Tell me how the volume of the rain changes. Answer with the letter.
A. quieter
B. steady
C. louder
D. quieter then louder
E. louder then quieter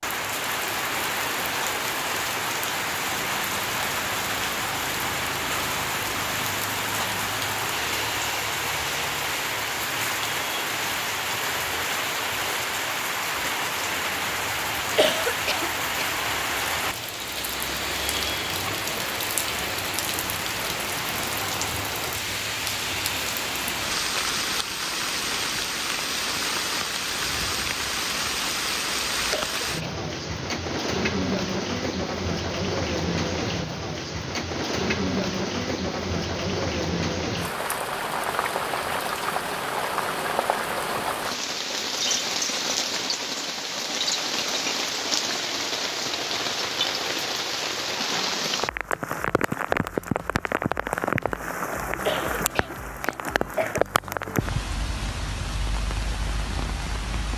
B.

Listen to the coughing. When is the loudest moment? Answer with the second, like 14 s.
15 s.